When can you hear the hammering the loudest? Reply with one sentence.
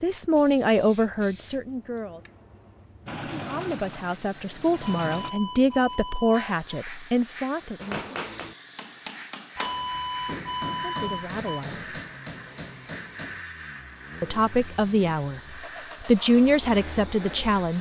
The volume of the hammering peaks at 8 seconds.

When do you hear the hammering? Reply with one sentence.
You can hear the hammering from 7.8 to 13.4 s.